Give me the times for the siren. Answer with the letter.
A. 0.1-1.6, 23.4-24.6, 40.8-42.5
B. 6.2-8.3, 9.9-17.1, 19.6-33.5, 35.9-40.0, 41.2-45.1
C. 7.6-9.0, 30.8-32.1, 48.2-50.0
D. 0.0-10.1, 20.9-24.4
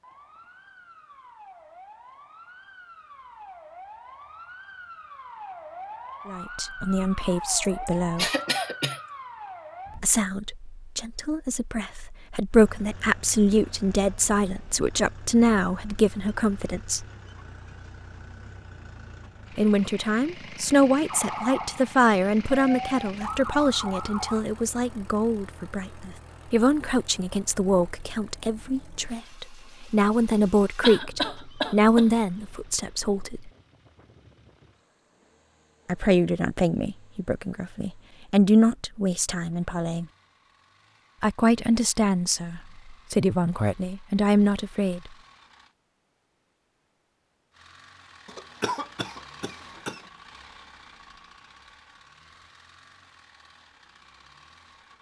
D.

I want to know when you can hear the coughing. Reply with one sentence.
You can hear the coughing from 7.6 to 9.0 s, from 30.8 to 32.1 s and from 48.2 to 50.0 s.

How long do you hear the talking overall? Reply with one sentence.
The talking can be heard for 31 seconds in total.